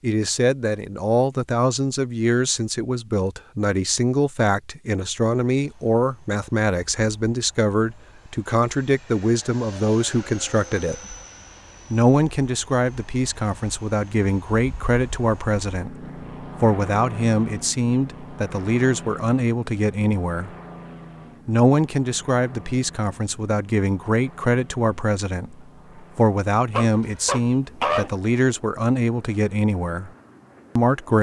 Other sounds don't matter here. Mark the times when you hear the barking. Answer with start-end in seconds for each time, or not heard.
26.7-28.1.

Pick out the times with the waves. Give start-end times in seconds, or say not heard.
not heard.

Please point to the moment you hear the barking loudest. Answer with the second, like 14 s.
28 s.